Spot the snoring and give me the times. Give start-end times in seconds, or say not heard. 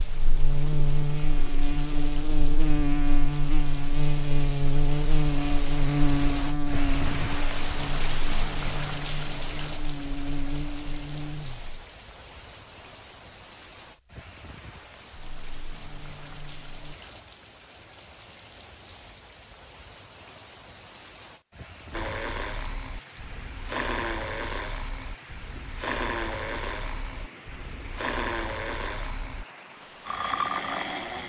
21.9-29.4, 30.1-31.2.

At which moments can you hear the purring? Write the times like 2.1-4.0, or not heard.
not heard.